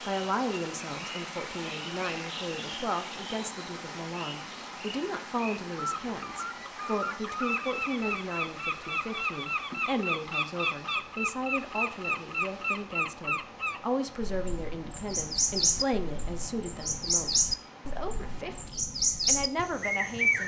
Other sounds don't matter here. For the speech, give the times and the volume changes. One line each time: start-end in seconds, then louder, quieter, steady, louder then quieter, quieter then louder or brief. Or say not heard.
0.0-20.4 steady.